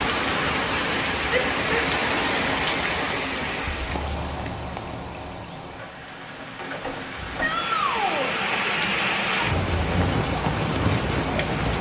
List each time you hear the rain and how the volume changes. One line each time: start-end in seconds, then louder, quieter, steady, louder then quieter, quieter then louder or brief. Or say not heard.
0.0-11.7 quieter then louder.